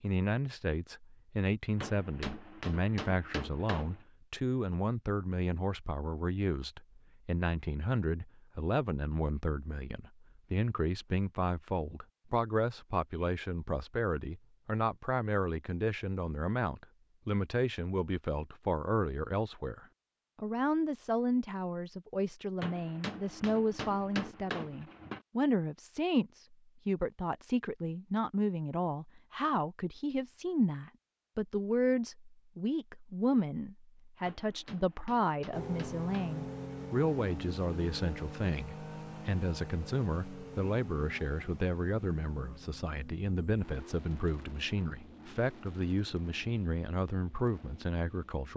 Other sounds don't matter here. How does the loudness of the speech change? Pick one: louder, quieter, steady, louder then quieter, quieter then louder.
steady.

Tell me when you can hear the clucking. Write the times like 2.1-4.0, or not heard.
not heard.